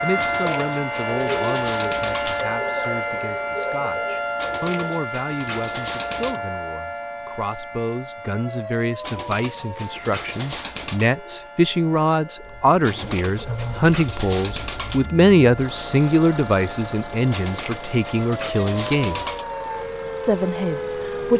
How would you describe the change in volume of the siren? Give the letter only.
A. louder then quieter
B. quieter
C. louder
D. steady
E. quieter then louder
E.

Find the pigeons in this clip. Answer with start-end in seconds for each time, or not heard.
0.1-2.5, 4.3-6.4, 9.0-11.1, 12.8-15.1, 17.3-19.4.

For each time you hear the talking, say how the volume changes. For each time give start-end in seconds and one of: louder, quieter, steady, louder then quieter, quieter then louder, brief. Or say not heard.
0.0-19.2 louder
20.2-21.3 brief.